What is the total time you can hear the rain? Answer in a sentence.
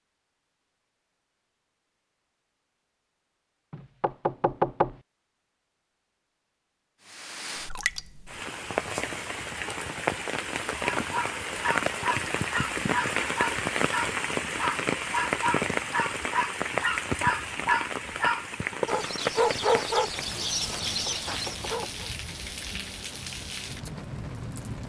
You can hear the rain for 18 seconds altogether.